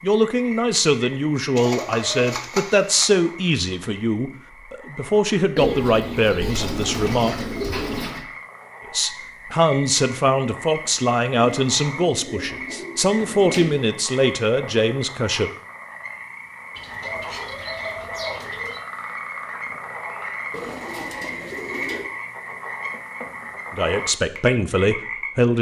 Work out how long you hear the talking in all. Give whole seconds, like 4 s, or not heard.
16 s.